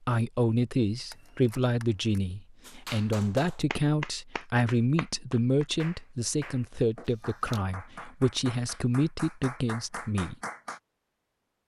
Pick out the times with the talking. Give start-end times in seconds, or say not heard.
0.1-10.3.